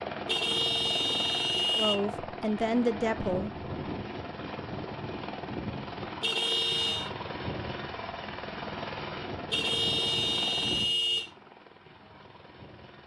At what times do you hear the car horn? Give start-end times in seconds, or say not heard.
0.2-1.9, 6.2-7.1, 9.5-11.3.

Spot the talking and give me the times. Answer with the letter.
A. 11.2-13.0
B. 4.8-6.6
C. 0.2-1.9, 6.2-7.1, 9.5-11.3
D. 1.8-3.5
D.